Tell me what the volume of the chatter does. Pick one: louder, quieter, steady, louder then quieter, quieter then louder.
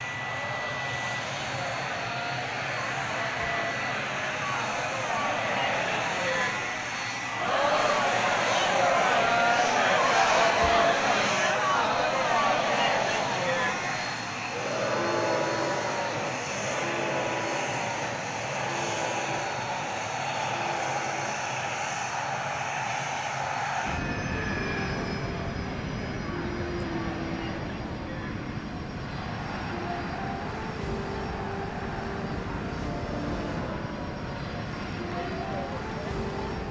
louder then quieter.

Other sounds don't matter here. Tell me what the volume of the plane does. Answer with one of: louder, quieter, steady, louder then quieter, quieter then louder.
steady.